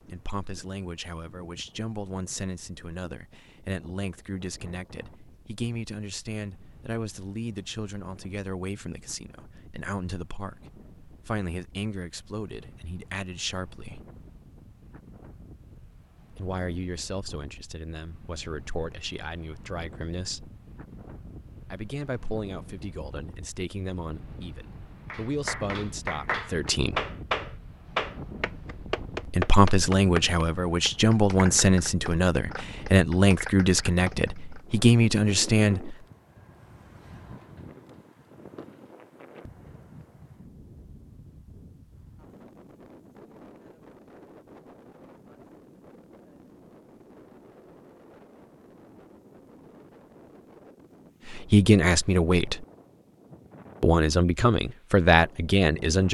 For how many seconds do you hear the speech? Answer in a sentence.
You can hear the speech for 34 seconds altogether.